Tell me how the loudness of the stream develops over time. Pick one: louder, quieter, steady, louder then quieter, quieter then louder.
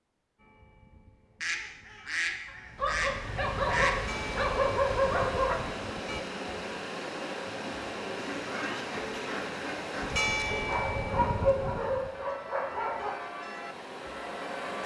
quieter.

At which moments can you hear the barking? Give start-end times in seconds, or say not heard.
2.8-5.6, 10.4-13.2.